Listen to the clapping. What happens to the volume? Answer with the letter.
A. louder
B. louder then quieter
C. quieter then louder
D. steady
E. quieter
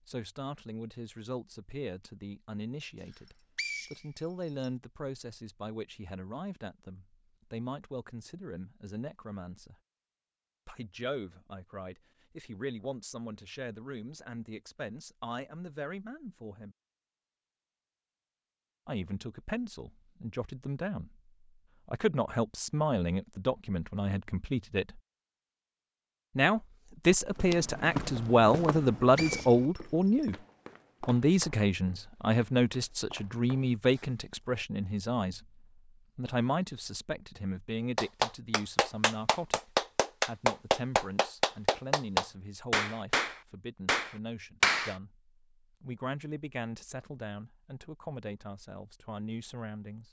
B.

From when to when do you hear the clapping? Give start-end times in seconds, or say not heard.
38.0-45.0.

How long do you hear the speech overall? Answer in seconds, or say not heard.
44 s.